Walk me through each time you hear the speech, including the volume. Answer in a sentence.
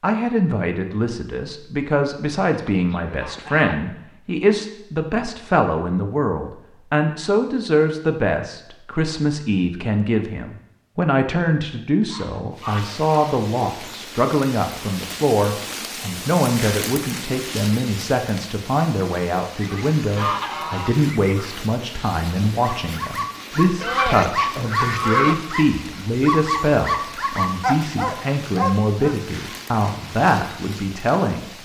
You can hear the speech from 0.0 to 31.4 s, at a steady volume.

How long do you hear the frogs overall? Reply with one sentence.
You can't hear the frogs here.